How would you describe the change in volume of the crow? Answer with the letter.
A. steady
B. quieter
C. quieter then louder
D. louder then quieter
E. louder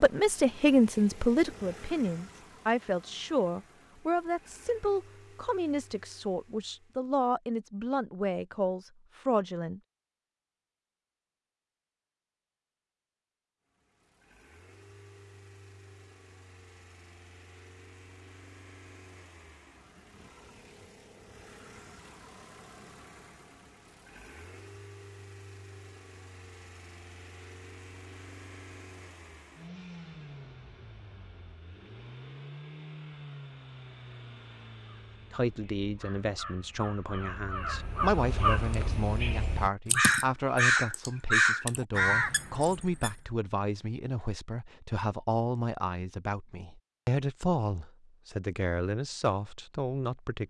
E.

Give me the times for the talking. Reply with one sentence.
The talking can be heard from 0.0 to 9.8 s and from 35.3 to 50.4 s.